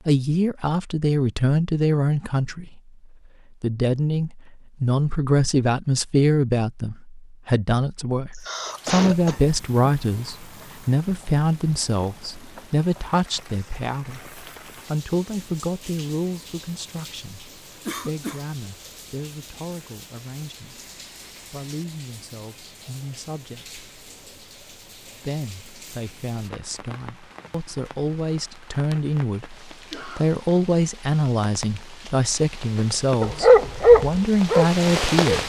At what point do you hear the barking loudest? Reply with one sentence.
The loudest moment of the barking is at 34 seconds.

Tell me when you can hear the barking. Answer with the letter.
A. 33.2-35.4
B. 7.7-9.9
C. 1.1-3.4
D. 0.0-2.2
A.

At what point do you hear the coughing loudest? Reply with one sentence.
The loudest moment of the coughing is at 9 seconds.